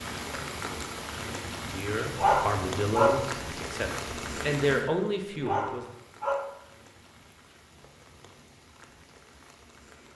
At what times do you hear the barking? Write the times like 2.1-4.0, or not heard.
2.1-3.2, 5.4-6.5.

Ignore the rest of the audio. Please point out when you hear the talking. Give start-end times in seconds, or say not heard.
1.6-5.8.